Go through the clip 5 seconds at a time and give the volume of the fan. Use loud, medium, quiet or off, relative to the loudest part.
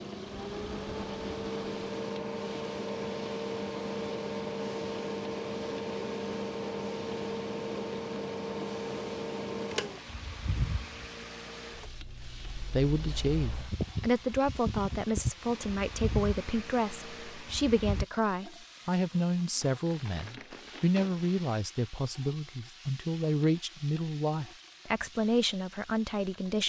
loud, loud, medium, loud, off, off.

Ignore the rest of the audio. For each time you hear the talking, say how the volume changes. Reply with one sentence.
The talking can be heard from 12.2 to 26.6 s, at a steady volume.